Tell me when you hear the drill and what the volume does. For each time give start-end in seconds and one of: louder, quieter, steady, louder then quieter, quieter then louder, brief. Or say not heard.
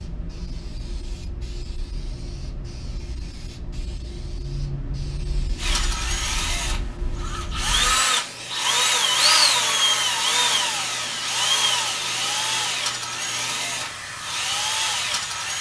5.5-15.5 louder then quieter.